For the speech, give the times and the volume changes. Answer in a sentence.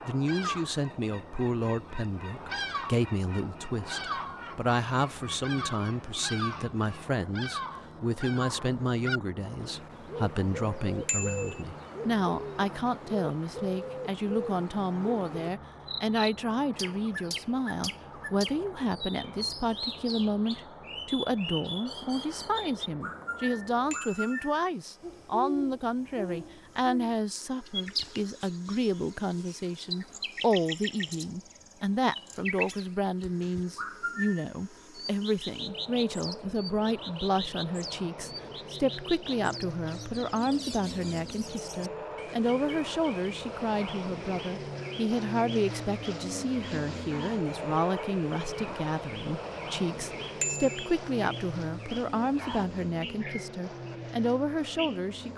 The speech can be heard from 0.1 to 55.3 s, at a steady volume.